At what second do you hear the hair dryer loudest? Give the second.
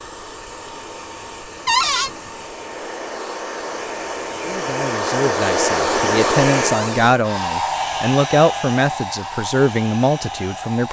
6 s.